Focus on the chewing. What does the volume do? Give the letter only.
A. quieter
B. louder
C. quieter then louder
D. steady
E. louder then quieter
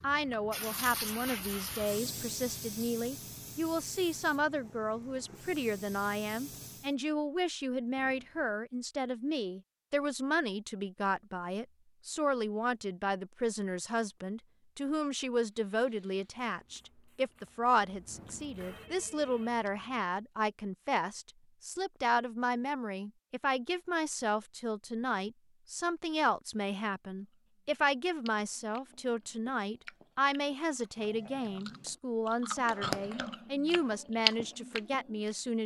B.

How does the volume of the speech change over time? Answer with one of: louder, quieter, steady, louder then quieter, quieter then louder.
steady.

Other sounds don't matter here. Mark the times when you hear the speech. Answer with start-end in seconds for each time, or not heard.
0.0-35.6.